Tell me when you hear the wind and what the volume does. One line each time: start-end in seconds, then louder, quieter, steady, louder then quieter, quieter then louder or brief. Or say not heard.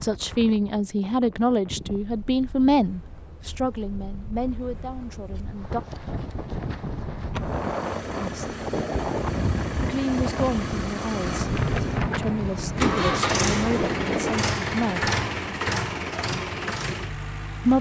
0.0-14.3 louder.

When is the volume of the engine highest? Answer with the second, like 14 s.
13 s.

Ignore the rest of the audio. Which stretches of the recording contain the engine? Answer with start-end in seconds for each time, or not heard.
7.3-17.7.